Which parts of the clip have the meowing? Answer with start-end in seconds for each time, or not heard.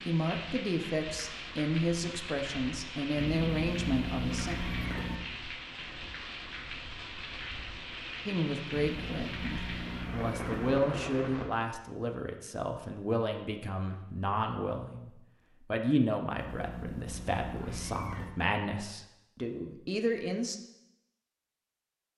3.1-5.2, 8.7-10.8, 16.4-18.4.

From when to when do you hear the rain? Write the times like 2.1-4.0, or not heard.
0.0-11.5.